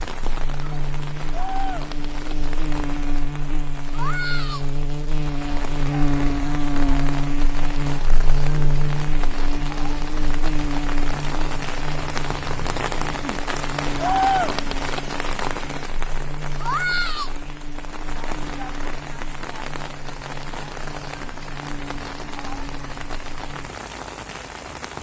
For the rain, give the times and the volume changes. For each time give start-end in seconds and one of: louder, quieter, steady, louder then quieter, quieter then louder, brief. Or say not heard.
0.0-24.9 louder then quieter.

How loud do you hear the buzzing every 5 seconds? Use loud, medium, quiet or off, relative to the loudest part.
medium, loud, medium, quiet, quiet.